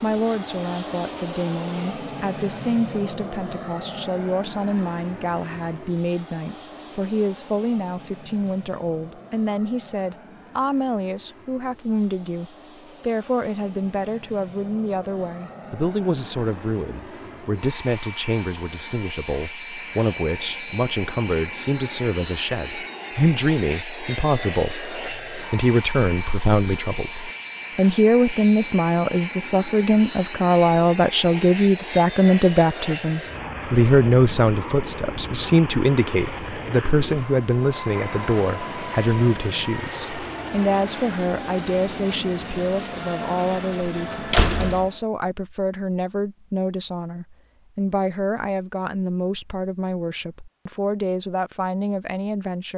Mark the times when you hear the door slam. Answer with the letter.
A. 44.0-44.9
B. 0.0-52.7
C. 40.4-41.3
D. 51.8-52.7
A.